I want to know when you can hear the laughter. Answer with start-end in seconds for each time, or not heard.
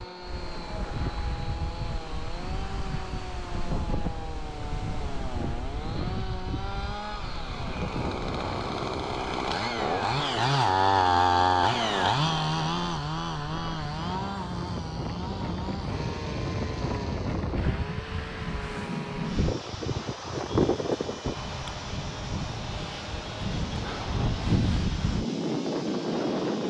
not heard.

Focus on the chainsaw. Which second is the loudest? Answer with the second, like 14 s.
11 s.